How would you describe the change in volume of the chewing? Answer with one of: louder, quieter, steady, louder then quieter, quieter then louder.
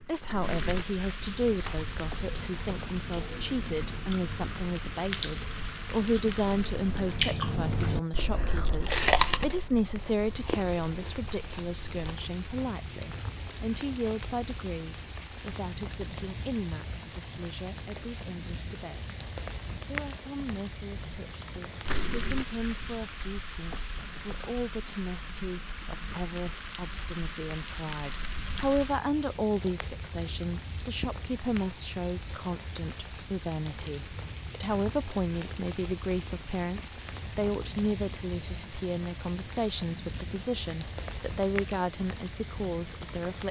louder then quieter.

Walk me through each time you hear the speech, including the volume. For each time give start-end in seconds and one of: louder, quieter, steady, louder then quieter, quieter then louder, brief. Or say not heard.
0.0-43.4 quieter then louder.